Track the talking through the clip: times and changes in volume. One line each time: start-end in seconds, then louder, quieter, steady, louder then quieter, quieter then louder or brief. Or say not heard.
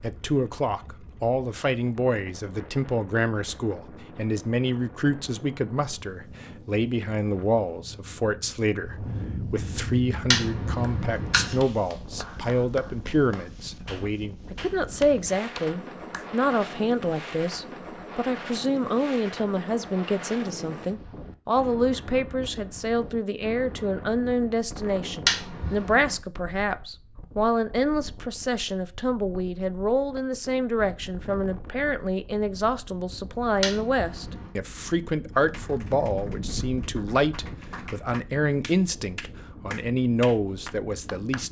0.0-41.4 steady.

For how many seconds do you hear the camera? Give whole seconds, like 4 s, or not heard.
3 s.